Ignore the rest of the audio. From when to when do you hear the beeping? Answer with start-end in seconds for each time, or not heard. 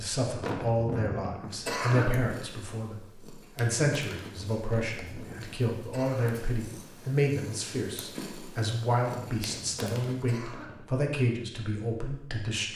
not heard.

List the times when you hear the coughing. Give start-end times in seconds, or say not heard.
0.4-2.2, 4.7-6.5, 9.0-10.8.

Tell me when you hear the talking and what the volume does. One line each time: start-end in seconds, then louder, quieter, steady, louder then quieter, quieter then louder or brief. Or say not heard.
0.0-12.7 steady.